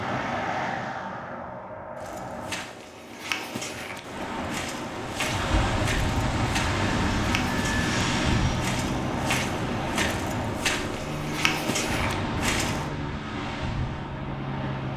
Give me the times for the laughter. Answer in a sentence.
The laughter can't be heard in this clip.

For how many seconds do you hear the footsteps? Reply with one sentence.
You can hear the footsteps for 11 seconds altogether.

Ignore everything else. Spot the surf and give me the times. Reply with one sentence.
The surf can be heard from 4.0 to 14.9 s.